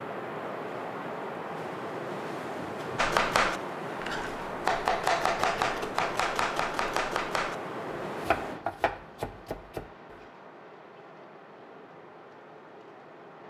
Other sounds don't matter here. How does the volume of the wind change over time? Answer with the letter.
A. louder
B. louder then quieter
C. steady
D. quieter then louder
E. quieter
E.